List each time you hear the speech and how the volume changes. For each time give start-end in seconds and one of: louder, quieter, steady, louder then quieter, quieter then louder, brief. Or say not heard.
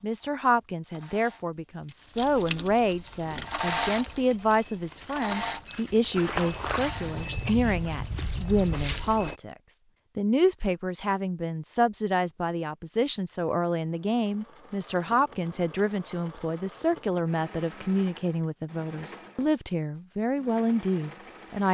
0.0-21.6 steady.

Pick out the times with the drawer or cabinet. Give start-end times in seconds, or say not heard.
not heard.